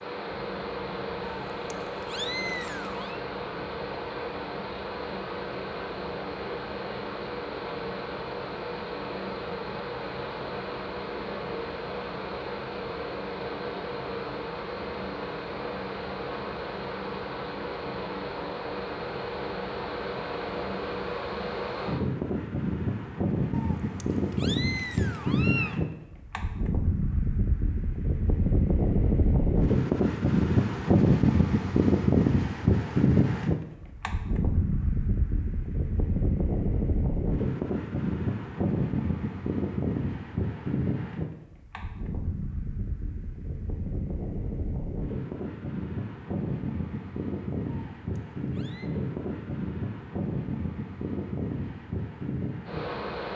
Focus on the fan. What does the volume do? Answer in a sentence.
The volume of the fan goes up, then down.